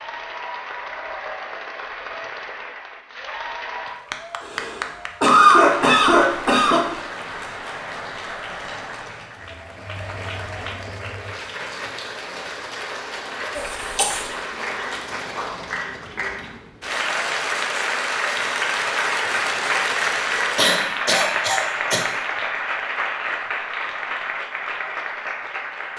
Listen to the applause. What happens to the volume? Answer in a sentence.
The volume of the applause goes up.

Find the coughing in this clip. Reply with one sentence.
The coughing can be heard from 4.4 to 6.8 s, from 13.6 to 14.2 s and from 20.6 to 22.1 s.